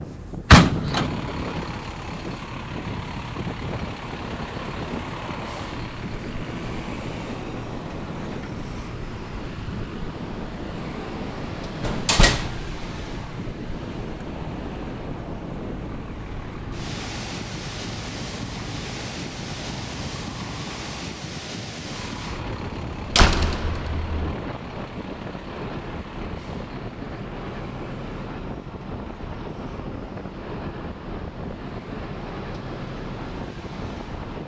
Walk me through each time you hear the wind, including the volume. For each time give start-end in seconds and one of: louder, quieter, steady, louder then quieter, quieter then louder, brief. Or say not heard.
0.0-34.4 steady.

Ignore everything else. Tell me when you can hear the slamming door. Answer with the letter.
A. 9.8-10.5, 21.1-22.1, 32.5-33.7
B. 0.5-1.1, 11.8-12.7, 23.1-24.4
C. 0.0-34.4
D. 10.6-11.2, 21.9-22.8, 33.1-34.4
B.